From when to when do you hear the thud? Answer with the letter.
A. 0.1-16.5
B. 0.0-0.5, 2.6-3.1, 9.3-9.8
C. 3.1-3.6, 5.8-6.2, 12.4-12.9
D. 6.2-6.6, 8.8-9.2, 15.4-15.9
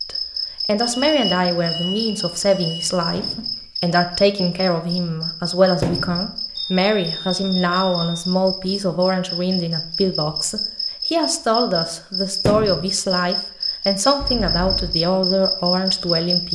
C.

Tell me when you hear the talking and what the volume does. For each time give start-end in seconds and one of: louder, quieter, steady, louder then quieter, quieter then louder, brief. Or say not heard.
0.1-16.5 steady.